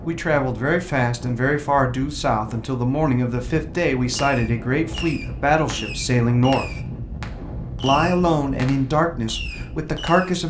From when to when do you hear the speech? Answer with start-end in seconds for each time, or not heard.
0.1-6.8, 7.8-10.4.